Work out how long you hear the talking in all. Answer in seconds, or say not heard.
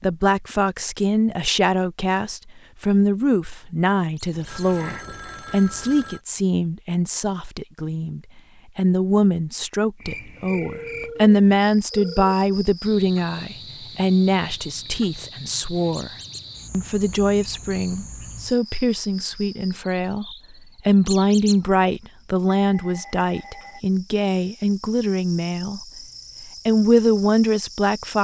26 s.